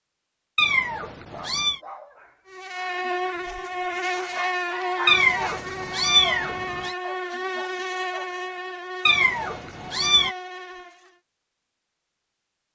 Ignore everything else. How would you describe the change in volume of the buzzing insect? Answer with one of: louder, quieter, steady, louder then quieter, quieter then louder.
quieter.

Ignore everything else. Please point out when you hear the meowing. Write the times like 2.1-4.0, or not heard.
0.6-1.8, 5.0-7.0, 9.1-10.3.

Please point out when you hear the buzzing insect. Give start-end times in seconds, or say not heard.
2.5-11.2.